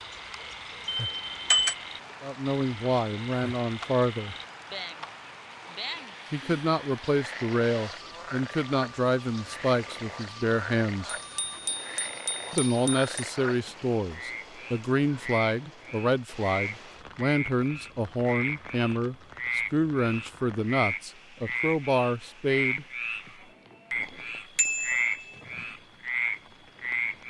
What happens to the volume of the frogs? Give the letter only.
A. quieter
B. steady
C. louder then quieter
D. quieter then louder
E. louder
E.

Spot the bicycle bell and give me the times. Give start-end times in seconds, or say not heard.
0.8-1.8, 11.3-13.1, 24.6-25.4.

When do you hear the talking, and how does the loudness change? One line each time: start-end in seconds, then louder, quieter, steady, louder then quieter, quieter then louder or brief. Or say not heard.
2.2-4.3 brief
6.3-11.2 steady
12.5-22.9 steady.